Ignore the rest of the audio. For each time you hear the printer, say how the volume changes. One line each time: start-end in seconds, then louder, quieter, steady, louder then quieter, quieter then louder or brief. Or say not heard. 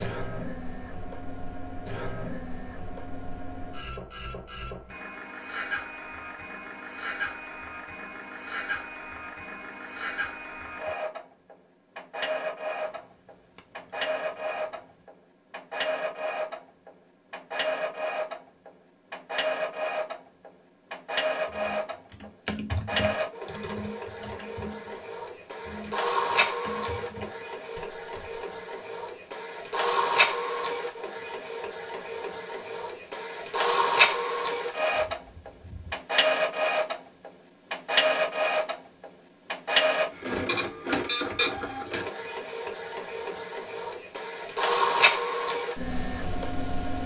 0.0-47.0 louder.